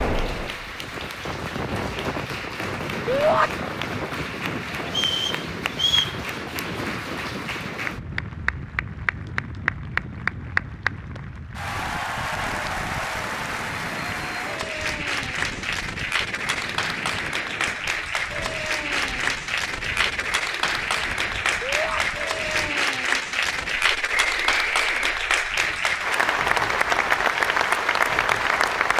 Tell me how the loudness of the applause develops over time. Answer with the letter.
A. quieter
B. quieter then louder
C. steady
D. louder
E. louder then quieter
D.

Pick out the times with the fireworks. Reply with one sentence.
The fireworks can't be heard in this clip.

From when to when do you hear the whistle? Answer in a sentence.
You can hear the whistle from 4.8 to 6.2 s and from 24.1 to 25.1 s.